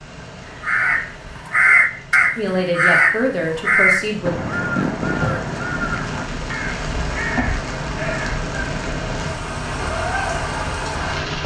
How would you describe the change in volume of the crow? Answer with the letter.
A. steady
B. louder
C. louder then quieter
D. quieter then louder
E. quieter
E.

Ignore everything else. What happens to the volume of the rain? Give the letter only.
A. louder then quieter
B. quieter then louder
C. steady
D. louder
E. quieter
D.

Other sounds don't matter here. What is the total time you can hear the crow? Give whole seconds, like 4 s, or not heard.
8 s.